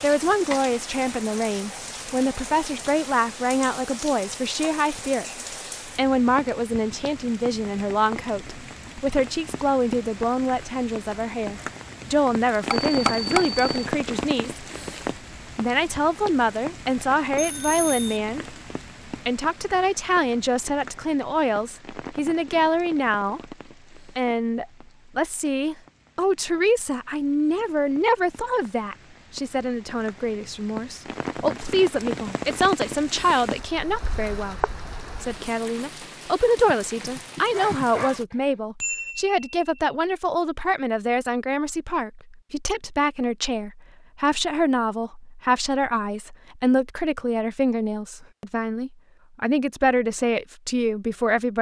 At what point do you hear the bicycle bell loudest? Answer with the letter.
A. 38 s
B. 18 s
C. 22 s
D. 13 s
D.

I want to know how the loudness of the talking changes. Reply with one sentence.
The volume of the talking stays about the same.